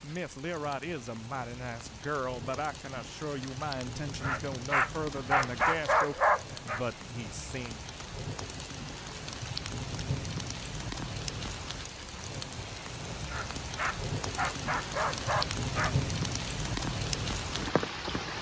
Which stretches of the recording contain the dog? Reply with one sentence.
You can hear the dog from 4.2 to 6.8 s and from 13.2 to 15.9 s.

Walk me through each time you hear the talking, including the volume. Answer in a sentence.
The talking can be heard from 0.0 to 7.8 s, at a steady volume.